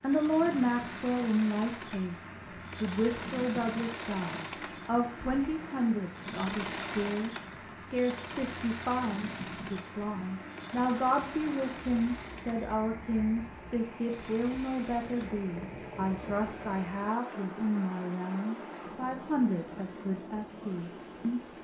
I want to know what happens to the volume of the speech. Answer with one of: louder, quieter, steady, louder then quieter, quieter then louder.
steady.